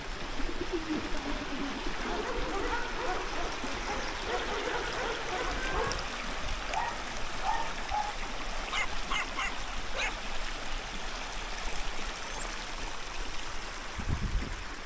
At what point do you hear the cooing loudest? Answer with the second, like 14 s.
1 s.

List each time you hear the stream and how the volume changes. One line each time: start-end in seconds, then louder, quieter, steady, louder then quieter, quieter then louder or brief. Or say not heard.
0.0-14.8 steady.